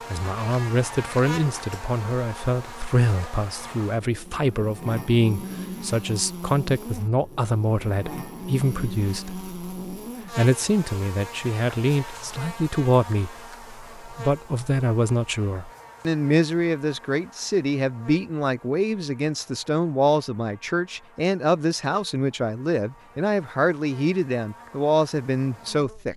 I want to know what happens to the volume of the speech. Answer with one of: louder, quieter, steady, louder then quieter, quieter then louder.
steady.